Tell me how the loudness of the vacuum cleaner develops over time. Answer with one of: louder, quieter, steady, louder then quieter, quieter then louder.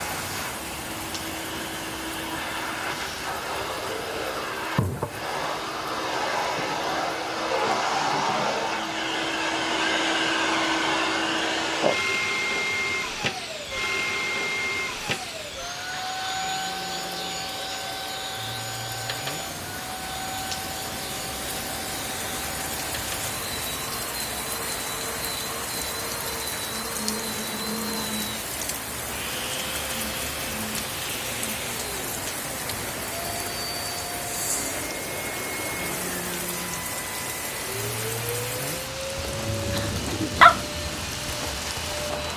quieter.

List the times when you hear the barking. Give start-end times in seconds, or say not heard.
39.2-40.6.